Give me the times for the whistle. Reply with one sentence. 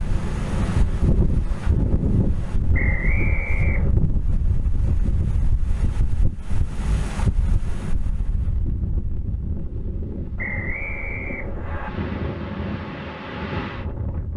The whistle can be heard from 2.7 to 4.0 s and from 10.3 to 11.9 s.